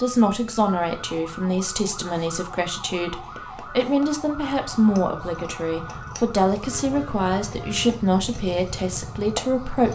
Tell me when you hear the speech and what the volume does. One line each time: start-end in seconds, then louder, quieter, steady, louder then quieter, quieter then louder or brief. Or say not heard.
0.0-9.9 steady.